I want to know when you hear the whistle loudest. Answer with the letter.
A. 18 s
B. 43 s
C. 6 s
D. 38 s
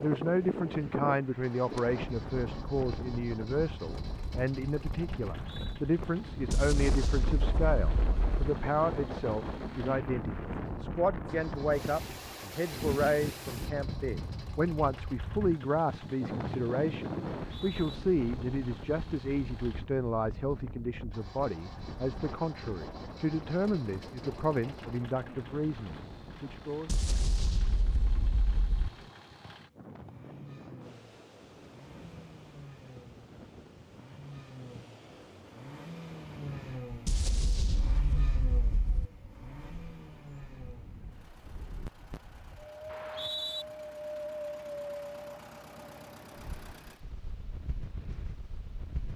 B.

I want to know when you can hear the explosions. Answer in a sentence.
The explosions can be heard from 6.5 to 8.4 s, from 26.9 to 28.9 s and from 37.0 to 39.0 s.